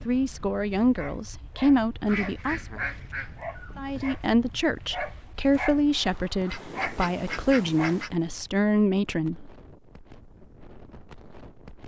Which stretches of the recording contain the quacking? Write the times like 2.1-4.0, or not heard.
2.0-4.0, 6.5-8.1.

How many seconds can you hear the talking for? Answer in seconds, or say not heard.
8 s.